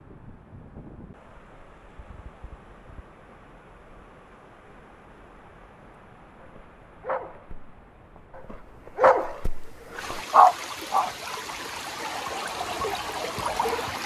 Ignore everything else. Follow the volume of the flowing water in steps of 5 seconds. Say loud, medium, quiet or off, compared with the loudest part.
quiet, quiet, loud.